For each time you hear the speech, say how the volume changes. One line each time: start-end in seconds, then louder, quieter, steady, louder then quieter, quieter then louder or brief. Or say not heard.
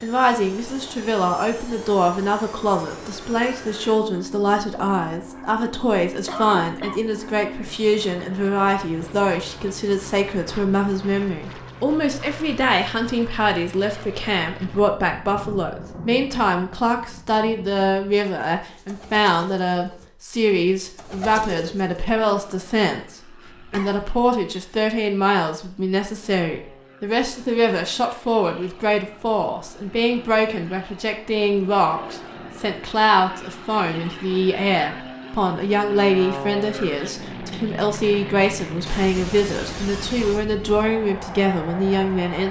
0.0-42.4 steady.